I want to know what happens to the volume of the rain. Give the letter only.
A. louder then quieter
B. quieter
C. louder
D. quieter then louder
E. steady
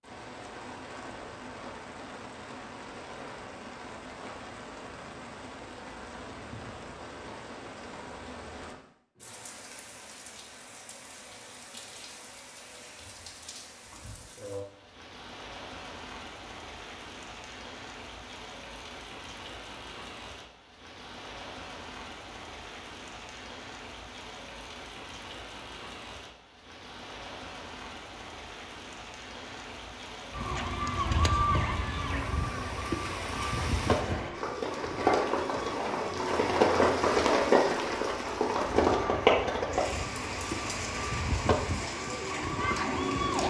C.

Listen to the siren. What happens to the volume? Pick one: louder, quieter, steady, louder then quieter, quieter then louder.
quieter then louder.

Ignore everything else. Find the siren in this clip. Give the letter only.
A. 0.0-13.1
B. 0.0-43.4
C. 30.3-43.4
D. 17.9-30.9
C.